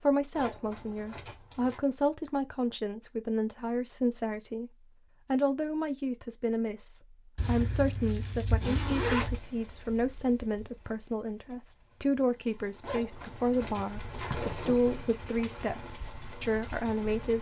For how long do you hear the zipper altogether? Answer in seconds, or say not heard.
6 s.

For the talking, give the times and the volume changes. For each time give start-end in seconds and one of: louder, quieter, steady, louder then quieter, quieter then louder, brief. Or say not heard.
0.0-17.3 steady.